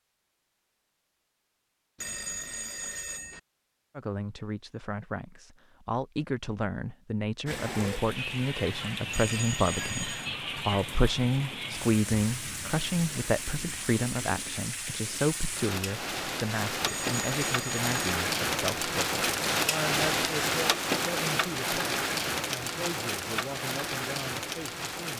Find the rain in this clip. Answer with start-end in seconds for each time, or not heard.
7.5-25.1.